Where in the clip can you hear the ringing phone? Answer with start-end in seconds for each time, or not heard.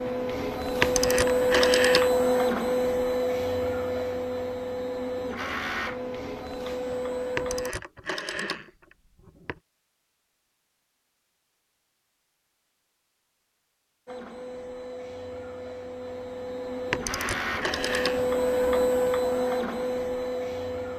0.8-2.1, 7.3-9.6, 16.9-18.2.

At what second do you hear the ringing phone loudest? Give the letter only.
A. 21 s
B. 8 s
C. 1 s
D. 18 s
C.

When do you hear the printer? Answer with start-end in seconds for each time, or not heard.
0.0-7.8, 14.1-20.9.